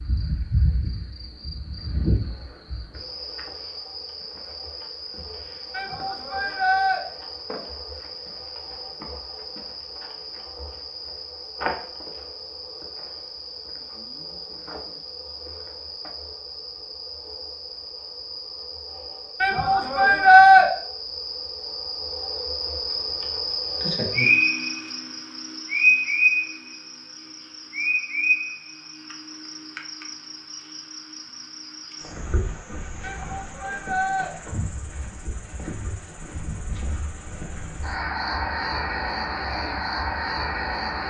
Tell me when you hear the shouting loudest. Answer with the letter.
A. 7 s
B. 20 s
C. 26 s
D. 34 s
B.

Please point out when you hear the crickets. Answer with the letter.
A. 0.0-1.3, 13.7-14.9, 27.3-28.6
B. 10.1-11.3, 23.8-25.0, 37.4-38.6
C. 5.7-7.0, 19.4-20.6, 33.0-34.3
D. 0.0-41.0
D.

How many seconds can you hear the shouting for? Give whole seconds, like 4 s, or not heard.
4 s.